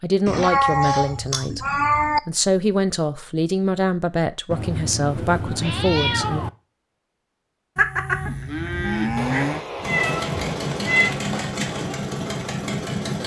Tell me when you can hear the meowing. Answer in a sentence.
You can hear the meowing from 0.2 to 2.2 s, from 4.5 to 6.5 s and from 9.2 to 11.2 s.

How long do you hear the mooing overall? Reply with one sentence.
You can hear the mooing for 2 seconds altogether.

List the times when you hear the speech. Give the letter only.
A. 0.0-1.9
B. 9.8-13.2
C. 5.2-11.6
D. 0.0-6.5
D.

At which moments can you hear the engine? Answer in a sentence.
The engine can be heard from 9.8 to 13.2 s.